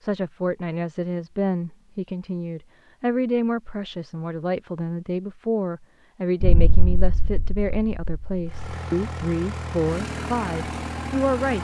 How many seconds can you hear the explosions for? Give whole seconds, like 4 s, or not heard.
2 s.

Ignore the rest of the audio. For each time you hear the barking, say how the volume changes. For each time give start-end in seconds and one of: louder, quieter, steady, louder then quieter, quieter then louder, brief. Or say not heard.
not heard.